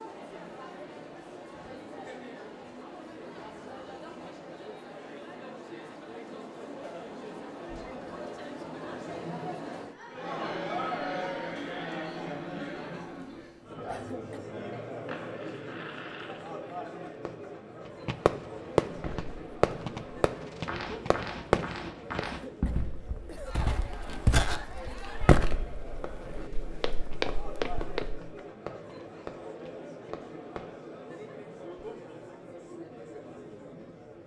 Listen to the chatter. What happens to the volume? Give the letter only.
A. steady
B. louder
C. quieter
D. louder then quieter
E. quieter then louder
D.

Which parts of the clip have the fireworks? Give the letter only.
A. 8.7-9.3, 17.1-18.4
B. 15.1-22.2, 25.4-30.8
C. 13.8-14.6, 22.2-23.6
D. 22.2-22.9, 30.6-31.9
B.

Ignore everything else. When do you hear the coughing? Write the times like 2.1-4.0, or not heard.
13.8-14.6, 22.2-23.6.